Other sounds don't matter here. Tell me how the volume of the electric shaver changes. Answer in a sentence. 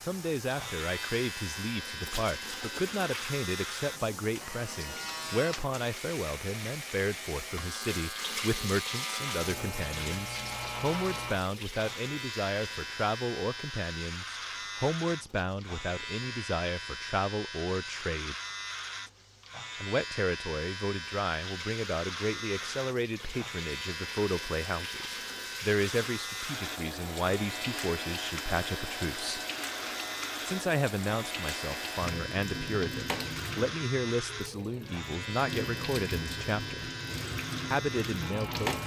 The loudness of the electric shaver stays about the same.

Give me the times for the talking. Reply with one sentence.
The talking can be heard from 0.0 to 18.4 s, from 19.8 to 29.4 s, from 30.4 to 36.9 s and from 37.7 to 38.8 s.